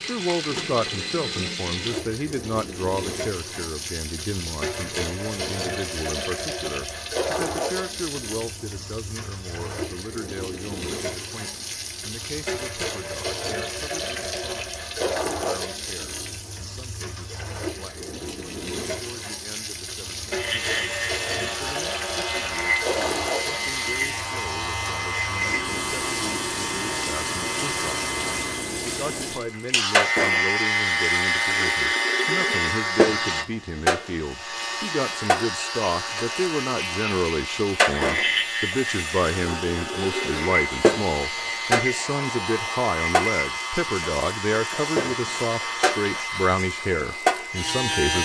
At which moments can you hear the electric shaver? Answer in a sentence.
You can hear the electric shaver from 20.4 to 48.2 s.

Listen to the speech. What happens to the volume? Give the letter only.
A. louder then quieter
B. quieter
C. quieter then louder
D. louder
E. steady
C.